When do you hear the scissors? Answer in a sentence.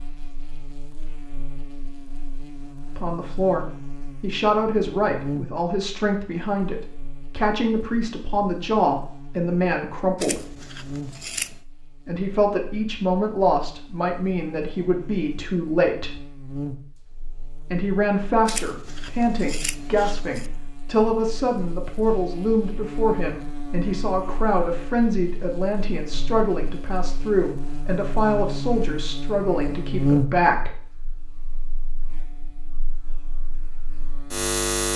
You can hear the scissors from 10.2 to 11.6 s and from 18.4 to 20.5 s.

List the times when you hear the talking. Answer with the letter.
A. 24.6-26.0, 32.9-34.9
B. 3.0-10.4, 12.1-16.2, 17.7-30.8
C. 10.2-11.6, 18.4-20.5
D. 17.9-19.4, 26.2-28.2
B.